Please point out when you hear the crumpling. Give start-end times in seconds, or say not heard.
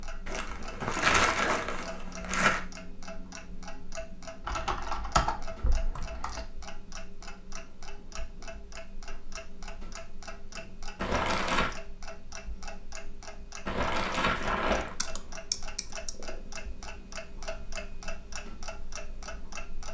0.2-2.6, 10.9-11.8, 13.7-14.9.